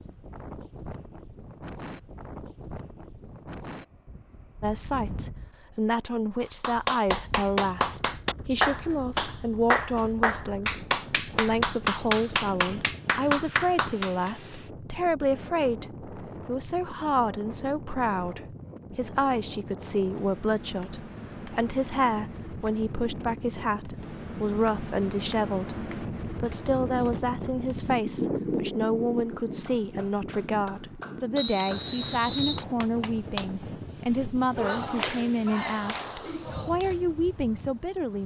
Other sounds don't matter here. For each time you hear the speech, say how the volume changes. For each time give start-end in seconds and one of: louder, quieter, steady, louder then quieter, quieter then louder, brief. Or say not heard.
4.6-38.2 steady.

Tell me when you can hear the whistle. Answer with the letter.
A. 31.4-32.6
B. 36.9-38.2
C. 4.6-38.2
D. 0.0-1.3
A.